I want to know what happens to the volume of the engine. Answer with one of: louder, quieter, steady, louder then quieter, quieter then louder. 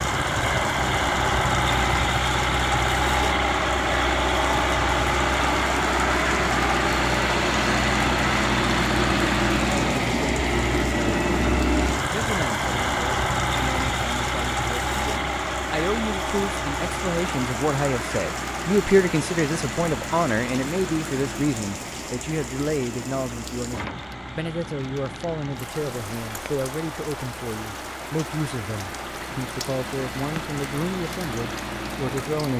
quieter.